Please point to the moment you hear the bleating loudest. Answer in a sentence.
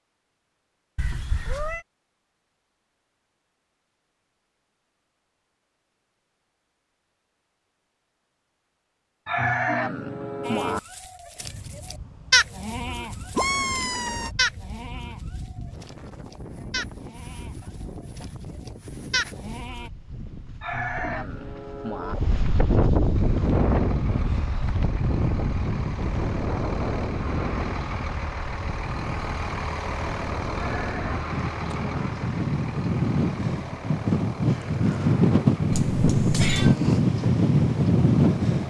The volume of the bleating peaks at 12 seconds.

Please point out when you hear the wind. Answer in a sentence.
You can hear the wind from 11.4 to 38.6 s.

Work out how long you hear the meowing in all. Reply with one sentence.
You can hear the meowing for 3 seconds altogether.